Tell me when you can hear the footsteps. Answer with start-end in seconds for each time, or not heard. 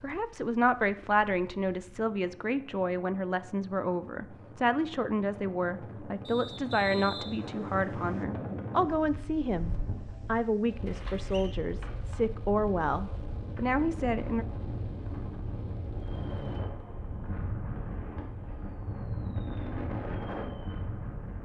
not heard.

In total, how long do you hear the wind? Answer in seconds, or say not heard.
21 s.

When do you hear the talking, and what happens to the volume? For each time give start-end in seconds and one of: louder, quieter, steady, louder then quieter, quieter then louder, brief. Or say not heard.
0.0-14.4 steady.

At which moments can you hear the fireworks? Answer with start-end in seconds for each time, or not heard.
16.0-21.1.